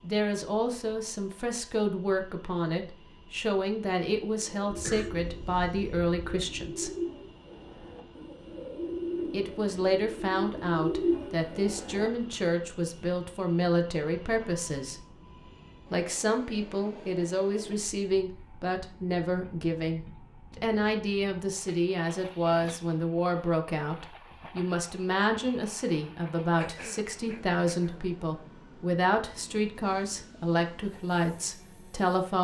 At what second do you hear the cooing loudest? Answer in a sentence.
The volume of the cooing peaks at 11 seconds.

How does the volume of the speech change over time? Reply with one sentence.
The volume of the speech stays about the same.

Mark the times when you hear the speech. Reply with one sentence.
You can hear the speech from 0.0 to 6.9 s, from 9.3 to 15.0 s and from 15.9 to 32.3 s.